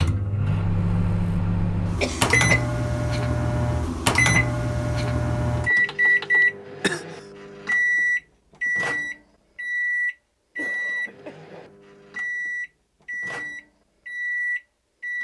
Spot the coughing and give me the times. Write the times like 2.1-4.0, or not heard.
2.0-2.6, 6.4-7.0, 10.6-11.8.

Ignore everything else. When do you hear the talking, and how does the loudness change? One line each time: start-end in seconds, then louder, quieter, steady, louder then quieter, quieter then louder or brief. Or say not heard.
not heard.